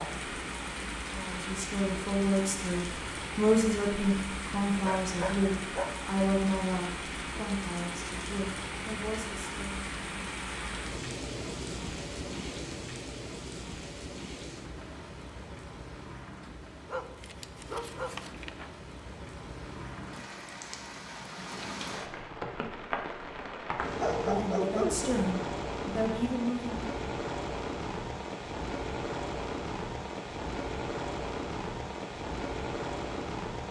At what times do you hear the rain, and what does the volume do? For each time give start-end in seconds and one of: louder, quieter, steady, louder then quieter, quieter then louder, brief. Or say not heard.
0.0-33.6 quieter then louder.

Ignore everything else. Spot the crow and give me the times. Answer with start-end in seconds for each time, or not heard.
not heard.